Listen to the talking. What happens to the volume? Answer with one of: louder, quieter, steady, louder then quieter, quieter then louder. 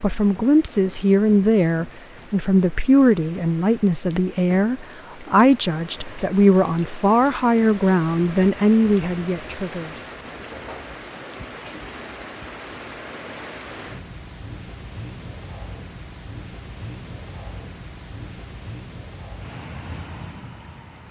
steady.